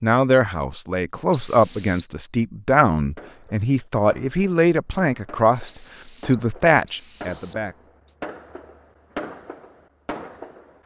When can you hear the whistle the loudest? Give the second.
2 s.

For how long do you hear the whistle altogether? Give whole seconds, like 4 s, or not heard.
3 s.